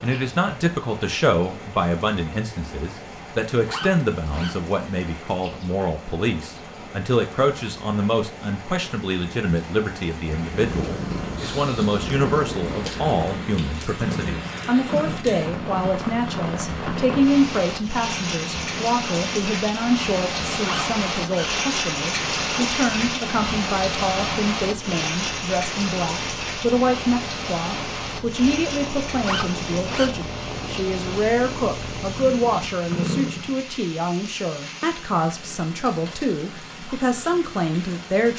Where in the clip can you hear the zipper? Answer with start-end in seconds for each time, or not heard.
3.6-4.5, 20.6-21.5, 29.2-30.1.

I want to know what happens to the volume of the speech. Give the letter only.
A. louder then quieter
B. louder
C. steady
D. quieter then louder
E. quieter
C.